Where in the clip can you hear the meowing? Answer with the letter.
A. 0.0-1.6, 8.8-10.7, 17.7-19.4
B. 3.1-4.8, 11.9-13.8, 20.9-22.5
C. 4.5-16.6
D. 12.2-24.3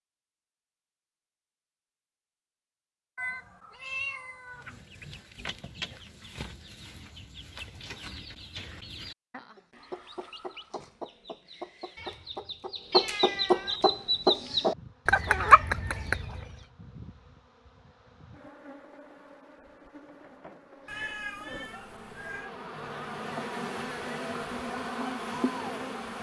B.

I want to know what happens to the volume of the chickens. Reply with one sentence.
The volume of the chickens goes up.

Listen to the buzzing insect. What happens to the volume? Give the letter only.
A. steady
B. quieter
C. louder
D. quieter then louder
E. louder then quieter
C.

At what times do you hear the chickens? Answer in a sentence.
You can hear the chickens from 4.5 to 16.6 s.